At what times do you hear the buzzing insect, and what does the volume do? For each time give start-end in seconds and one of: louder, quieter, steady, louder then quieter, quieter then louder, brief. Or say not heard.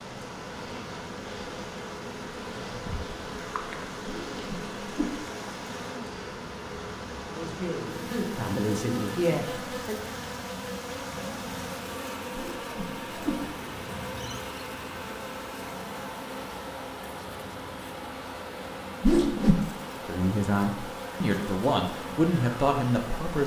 0.0-23.4 steady.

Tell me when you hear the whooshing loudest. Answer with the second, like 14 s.
19 s.